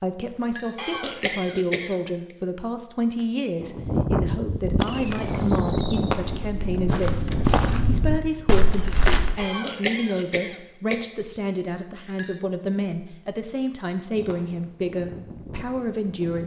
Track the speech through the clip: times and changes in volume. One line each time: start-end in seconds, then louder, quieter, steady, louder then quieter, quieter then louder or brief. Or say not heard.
0.0-16.4 steady.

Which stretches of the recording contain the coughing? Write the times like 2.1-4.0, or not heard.
0.8-2.4, 9.3-11.1.